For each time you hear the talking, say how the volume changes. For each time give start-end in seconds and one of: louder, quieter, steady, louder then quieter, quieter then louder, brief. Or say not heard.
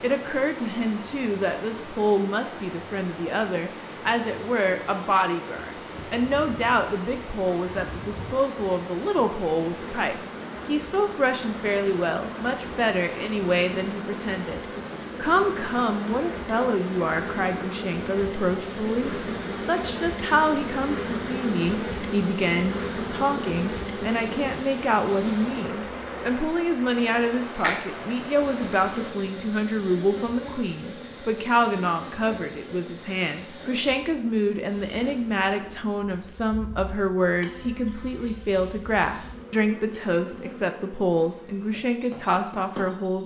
0.0-43.2 steady.